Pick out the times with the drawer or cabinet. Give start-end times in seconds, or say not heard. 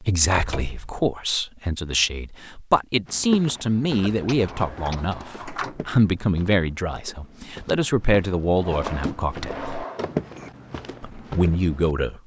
0.3-1.0, 4.3-5.8, 8.6-10.5.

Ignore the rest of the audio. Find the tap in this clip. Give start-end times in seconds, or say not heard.
not heard.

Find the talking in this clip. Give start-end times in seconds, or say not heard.
0.0-9.8, 11.0-12.2.